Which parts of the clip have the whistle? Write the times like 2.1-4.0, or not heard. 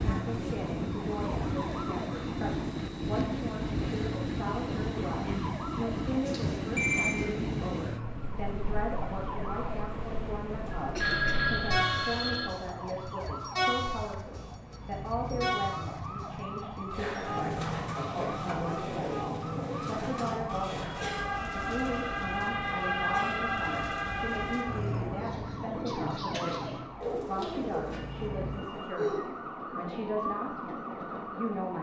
not heard.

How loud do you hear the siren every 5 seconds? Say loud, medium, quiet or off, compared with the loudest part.
medium, medium, medium, medium, loud, medium, medium.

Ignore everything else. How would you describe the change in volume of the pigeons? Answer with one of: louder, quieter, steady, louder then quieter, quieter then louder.
quieter then louder.